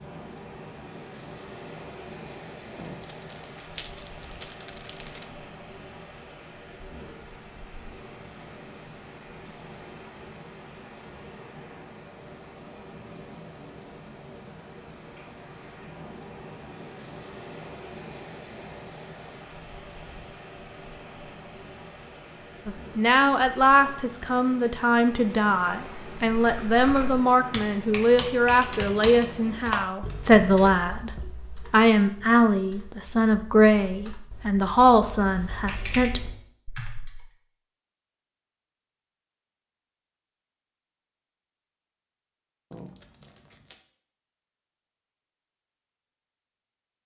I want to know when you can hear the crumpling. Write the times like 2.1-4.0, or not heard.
2.8-5.3, 42.7-43.9.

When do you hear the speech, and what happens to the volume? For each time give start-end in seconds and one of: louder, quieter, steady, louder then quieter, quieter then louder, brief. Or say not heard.
22.6-36.2 steady.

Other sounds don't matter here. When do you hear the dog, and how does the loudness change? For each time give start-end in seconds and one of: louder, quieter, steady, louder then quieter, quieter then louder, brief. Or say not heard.
not heard.